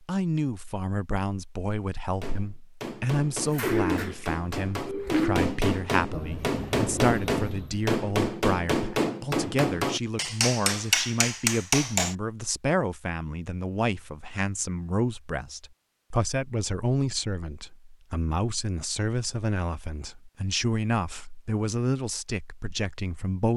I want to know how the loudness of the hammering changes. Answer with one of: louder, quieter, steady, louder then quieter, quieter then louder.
louder.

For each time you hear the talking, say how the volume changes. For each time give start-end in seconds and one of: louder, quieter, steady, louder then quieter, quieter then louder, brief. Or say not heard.
0.0-23.5 steady.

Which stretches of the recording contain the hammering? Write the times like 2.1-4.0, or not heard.
2.1-12.2.